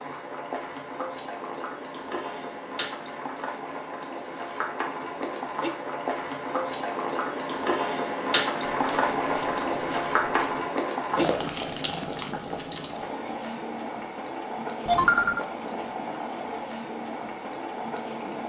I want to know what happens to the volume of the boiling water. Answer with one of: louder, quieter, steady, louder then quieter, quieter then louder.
louder then quieter.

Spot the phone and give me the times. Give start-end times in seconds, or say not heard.
14.8-15.4.